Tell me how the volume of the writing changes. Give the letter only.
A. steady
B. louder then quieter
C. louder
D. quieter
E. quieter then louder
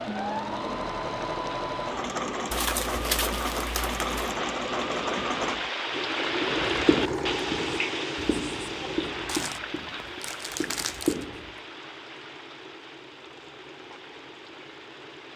E.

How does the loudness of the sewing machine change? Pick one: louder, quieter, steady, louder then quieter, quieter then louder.
quieter.